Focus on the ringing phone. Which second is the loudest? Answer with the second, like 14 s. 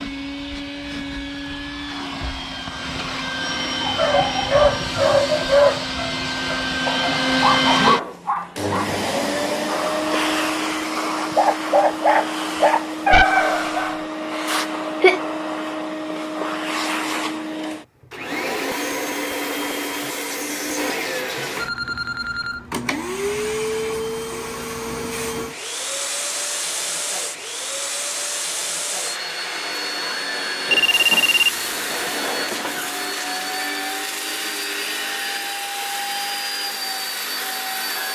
31 s.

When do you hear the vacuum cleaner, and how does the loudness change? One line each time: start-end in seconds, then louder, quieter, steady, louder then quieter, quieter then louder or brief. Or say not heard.
0.0-38.1 steady.